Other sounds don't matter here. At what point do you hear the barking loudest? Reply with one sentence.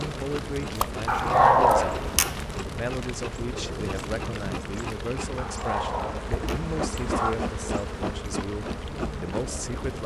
The volume of the barking peaks at 2 seconds.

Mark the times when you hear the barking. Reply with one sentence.
You can hear the barking from 1.1 to 2.5 s and from 5.3 to 7.3 s.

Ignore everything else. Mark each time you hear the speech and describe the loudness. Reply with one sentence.
The speech can be heard from 0.0 to 10.0 s, at a steady volume.